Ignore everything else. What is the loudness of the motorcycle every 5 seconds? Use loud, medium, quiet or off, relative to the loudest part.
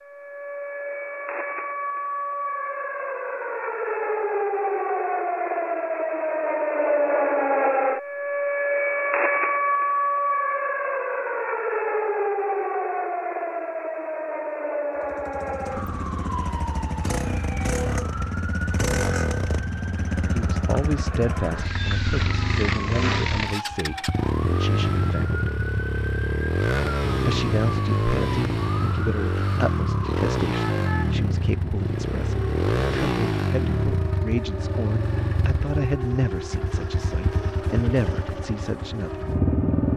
off, off, off, loud, loud, loud, loud, loud.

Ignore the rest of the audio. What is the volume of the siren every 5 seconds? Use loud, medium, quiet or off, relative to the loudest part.
medium, loud, loud, medium, quiet, quiet, quiet, quiet.